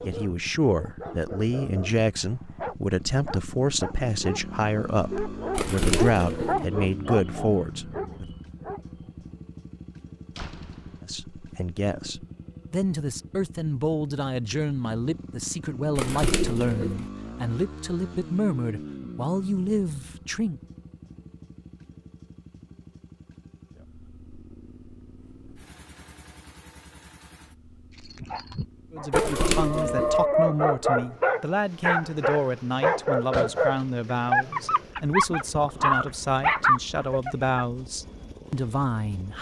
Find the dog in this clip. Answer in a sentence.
The dog can be heard from 0.0 to 9.1 s and from 27.9 to 37.5 s.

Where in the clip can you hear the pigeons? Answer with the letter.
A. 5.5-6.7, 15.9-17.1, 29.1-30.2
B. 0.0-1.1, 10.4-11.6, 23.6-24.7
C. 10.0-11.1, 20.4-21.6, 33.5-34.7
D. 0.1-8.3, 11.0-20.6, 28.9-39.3
A.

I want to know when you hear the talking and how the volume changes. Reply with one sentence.
The talking can be heard from 0.1 to 8.3 s, at a steady volume; from 11.0 to 20.6 s, at a steady volume; and from 28.9 to 39.3 s, at a steady volume.